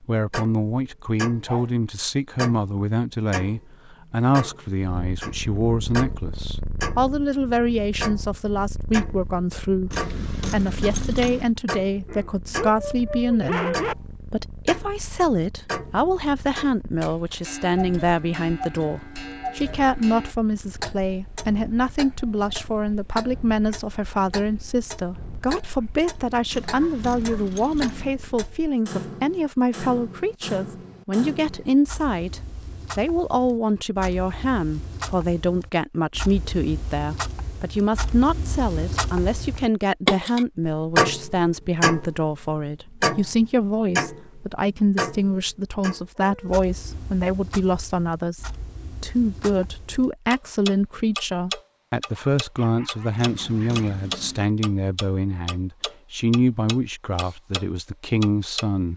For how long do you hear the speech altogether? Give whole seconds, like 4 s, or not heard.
59 s.